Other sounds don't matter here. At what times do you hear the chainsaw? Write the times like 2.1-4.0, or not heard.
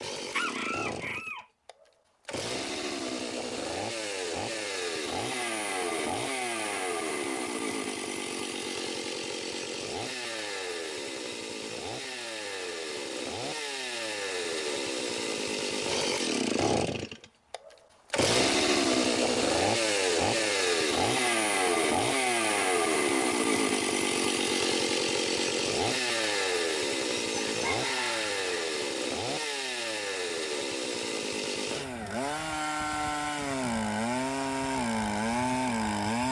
0.0-36.2.